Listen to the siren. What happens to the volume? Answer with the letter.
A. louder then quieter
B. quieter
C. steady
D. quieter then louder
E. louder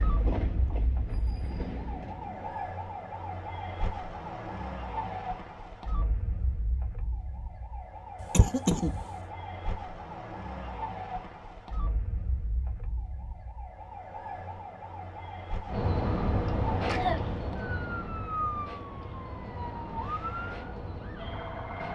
C.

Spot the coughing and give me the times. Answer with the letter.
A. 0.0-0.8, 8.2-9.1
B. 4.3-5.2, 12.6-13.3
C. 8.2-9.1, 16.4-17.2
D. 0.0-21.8
C.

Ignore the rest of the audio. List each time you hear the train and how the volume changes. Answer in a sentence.
The train can be heard briefly from 0.0 to 2.6 s; and from 15.7 to 21.8 s, getting quieter.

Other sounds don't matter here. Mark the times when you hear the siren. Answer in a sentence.
You can hear the siren from 0.0 to 21.8 s.